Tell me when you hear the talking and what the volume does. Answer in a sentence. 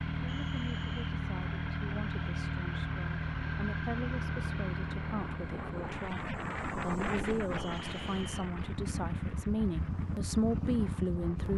You can hear the talking from 0.1 to 11.5 s, getting louder.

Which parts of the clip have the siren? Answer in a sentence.
You can't hear the siren here.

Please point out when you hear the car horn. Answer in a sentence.
The car horn can't be heard in this clip.